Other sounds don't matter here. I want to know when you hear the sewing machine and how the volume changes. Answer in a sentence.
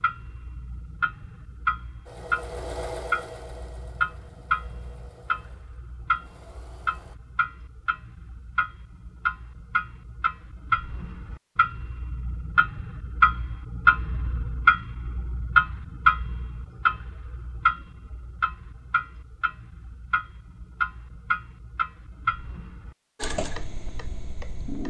You can hear the sewing machine from 2.0 to 7.2 s, getting quieter; and briefly from 23.2 to 24.8 s.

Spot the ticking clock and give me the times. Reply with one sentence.
You can hear the ticking clock from 0.0 to 24.8 s.